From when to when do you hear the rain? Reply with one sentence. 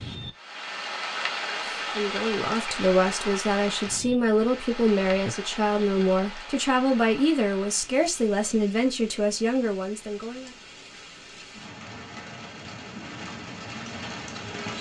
The rain can be heard from 0.0 to 14.7 s.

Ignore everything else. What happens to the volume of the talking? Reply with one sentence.
The loudness of the talking stays about the same.